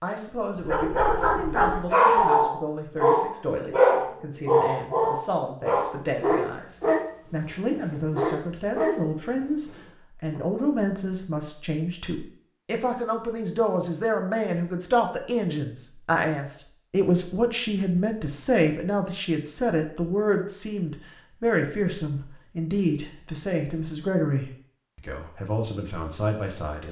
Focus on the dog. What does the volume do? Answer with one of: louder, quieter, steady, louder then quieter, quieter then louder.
quieter.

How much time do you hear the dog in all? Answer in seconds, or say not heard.
10 s.